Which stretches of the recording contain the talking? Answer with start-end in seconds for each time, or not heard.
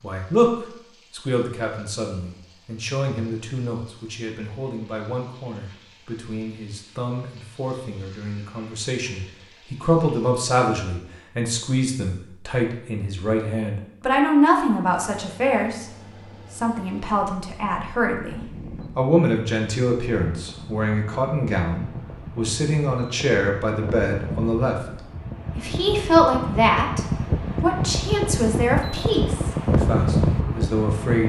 0.0-15.8, 16.5-24.9, 25.6-31.2.